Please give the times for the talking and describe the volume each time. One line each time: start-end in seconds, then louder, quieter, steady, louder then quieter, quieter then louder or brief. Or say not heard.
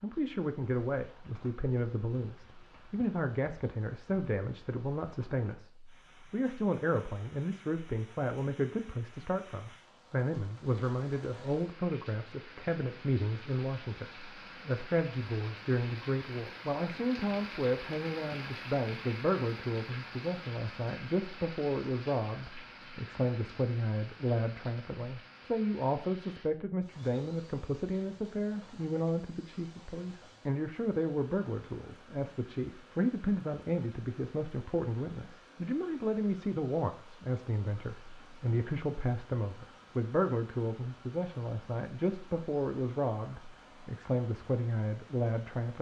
0.0-45.7 steady.